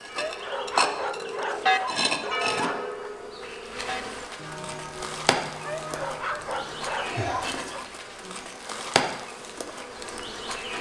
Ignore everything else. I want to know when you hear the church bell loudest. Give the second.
2 s.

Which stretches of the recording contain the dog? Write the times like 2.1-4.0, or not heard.
0.1-3.1, 5.6-7.9.